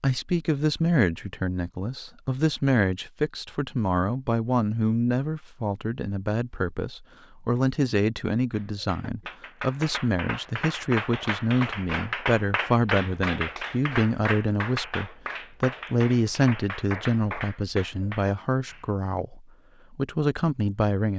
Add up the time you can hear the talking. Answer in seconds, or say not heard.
21 s.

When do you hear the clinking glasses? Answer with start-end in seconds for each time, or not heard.
not heard.